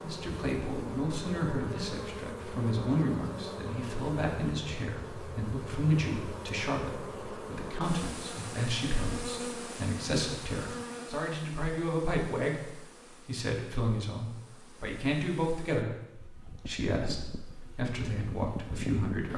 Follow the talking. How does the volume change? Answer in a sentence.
The volume of the talking stays about the same.